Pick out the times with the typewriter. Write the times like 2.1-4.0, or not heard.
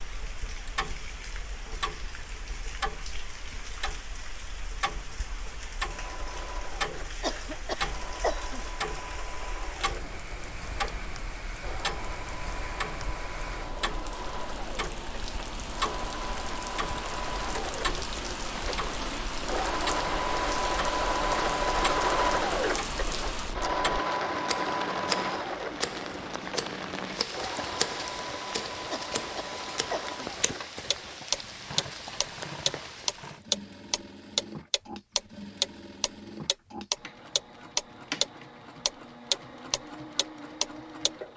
not heard.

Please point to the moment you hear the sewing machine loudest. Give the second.
22 s.